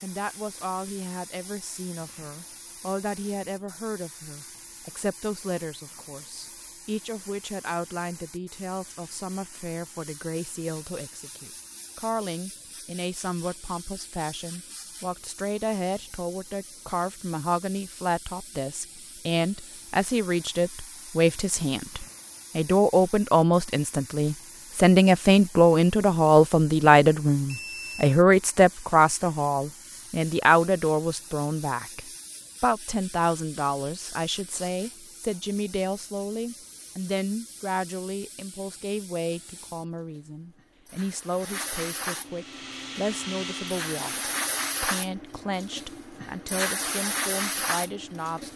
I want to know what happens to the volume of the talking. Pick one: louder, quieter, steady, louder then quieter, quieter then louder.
louder then quieter.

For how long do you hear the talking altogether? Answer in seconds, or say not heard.
48 s.